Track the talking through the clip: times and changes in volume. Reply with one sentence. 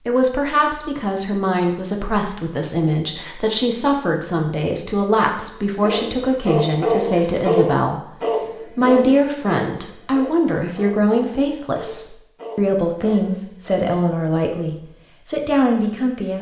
You can hear the talking from 0.1 to 16.3 s, at a steady volume.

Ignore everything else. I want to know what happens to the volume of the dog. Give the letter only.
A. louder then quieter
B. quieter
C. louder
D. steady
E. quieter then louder
B.